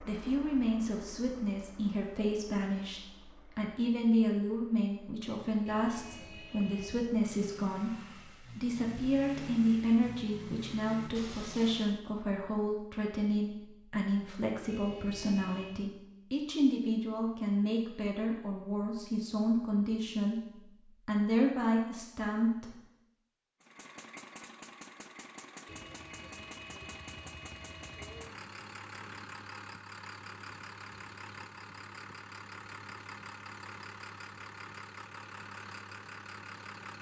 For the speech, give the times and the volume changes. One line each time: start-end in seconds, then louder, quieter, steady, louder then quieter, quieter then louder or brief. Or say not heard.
0.0-22.8 steady.